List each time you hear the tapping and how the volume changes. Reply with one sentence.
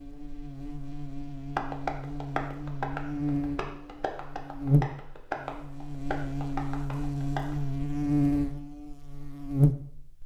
The tapping can be heard from 1.6 to 7.5 s, getting quieter then louder.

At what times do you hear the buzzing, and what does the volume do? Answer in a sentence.
The buzzing can be heard from 0.0 to 10.2 s, getting louder.